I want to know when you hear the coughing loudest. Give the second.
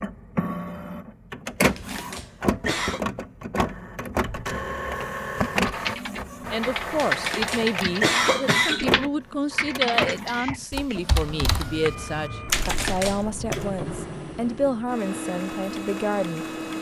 8 s.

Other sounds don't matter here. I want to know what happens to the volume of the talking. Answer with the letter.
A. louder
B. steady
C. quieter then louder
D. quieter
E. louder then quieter
B.